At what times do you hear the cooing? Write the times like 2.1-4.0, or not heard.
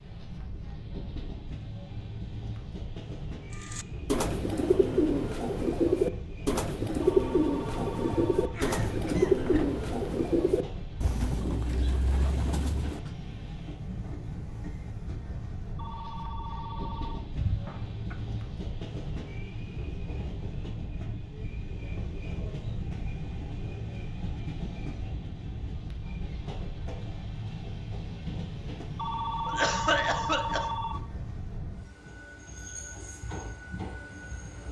3.6-13.0.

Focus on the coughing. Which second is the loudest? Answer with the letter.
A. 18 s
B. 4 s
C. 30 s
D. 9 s
C.